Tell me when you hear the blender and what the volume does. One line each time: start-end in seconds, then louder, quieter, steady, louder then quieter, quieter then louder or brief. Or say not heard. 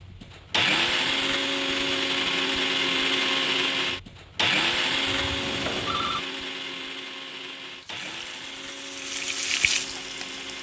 0.0-10.5 quieter.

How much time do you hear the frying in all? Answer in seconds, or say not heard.
3 s.